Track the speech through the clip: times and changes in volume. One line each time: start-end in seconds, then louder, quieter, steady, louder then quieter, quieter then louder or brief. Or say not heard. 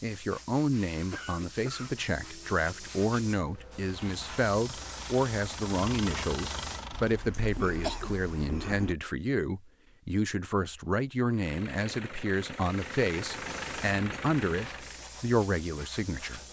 0.0-16.4 steady.